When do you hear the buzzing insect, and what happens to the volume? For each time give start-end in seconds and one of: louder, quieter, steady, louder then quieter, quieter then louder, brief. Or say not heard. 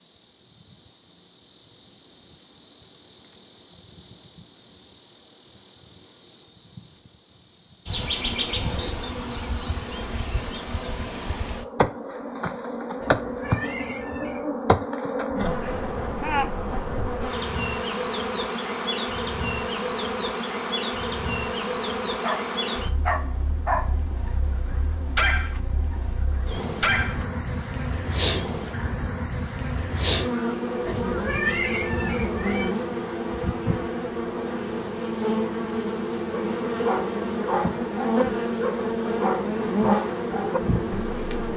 0.0-41.5 louder.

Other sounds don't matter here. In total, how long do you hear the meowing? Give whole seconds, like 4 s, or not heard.
3 s.